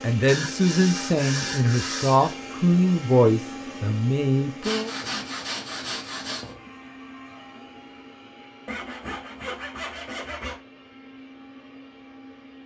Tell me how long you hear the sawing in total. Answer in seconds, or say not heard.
6 s.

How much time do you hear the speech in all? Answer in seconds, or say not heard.
5 s.